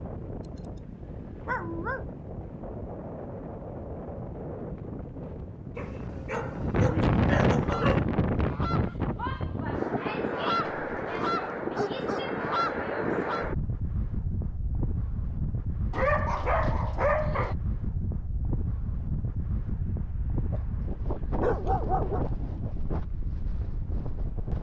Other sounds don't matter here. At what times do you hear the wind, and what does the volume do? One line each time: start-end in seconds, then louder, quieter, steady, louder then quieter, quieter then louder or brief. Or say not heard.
0.0-24.5 louder then quieter.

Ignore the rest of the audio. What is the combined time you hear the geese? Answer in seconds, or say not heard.
6 s.